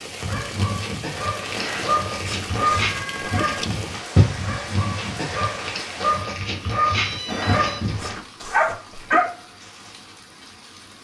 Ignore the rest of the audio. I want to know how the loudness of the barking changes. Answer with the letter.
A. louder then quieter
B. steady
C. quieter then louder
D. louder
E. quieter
D.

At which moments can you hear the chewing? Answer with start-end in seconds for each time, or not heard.
1.6-3.7, 7.2-9.2.